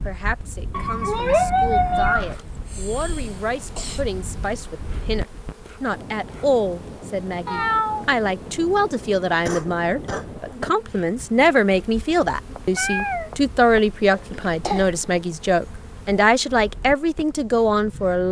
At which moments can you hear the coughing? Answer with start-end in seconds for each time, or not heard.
2.5-4.0, 9.4-10.7, 14.1-15.0.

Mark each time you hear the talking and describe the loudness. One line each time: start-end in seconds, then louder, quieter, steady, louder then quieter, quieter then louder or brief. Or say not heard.
0.1-18.2 louder.